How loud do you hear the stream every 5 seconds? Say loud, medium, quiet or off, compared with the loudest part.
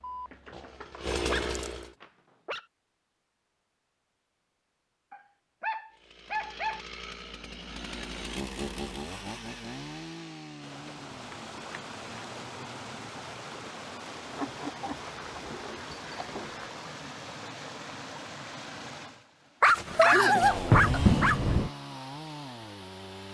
off, off, loud, loud, medium.